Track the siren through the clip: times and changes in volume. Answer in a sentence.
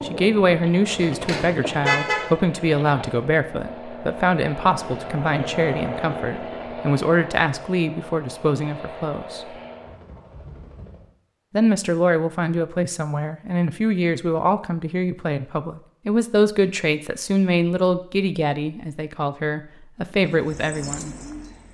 You can't hear the siren here.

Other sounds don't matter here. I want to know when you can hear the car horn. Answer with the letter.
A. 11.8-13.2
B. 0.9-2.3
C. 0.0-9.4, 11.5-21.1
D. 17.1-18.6
B.